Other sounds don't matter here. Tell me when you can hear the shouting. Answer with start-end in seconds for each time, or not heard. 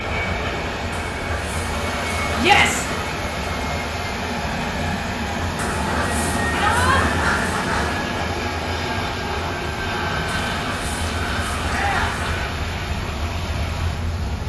2.4-2.9, 6.5-7.0, 11.7-12.2.